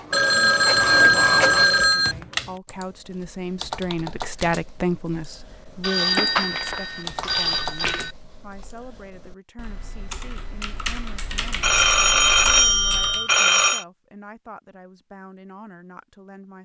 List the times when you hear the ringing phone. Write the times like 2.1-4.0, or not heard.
0.1-2.1, 5.8-8.1, 11.6-13.8.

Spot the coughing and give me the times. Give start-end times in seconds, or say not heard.
not heard.